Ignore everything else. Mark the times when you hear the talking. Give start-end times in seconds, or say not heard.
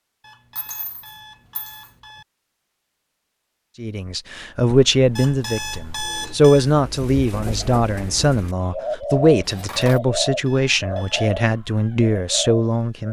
3.8-13.0.